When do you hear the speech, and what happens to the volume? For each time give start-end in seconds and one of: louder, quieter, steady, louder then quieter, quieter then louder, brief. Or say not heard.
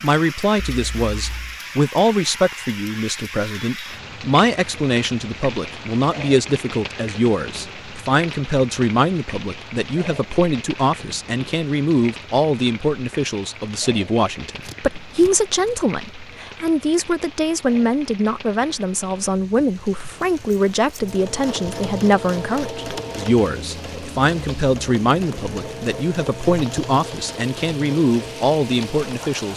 0.0-29.5 steady.